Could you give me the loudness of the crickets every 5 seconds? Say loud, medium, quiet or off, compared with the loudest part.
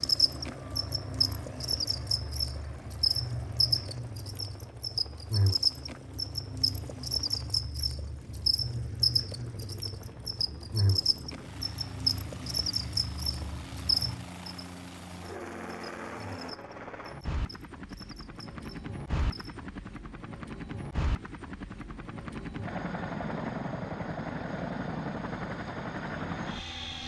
loud, loud, loud, quiet, off, off.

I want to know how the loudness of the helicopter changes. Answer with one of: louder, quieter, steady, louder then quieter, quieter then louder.
louder.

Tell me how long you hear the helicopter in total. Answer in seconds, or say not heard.
27 s.